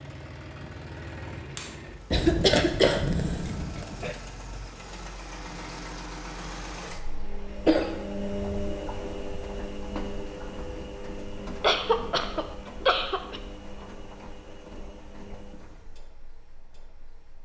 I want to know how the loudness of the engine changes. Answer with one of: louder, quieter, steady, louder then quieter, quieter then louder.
louder then quieter.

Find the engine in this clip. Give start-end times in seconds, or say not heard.
0.0-17.4.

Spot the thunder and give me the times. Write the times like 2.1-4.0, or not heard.
2.1-4.1.